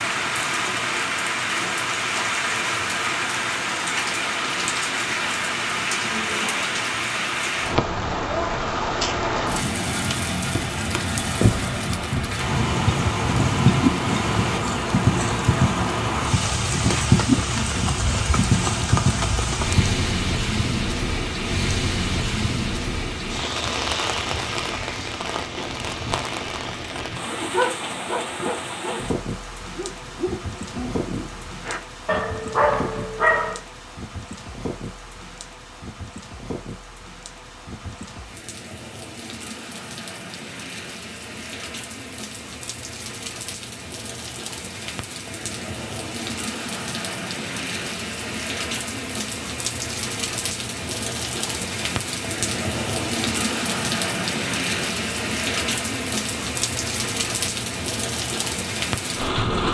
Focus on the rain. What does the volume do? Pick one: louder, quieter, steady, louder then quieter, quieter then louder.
quieter then louder.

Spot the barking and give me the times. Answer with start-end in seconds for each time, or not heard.
27.3-33.6.